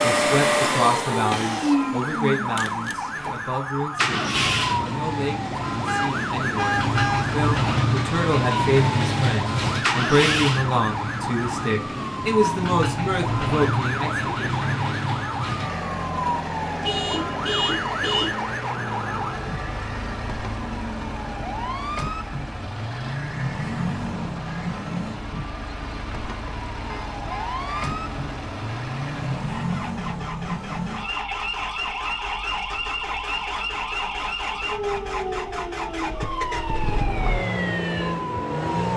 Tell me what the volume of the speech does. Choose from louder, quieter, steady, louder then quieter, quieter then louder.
quieter then louder.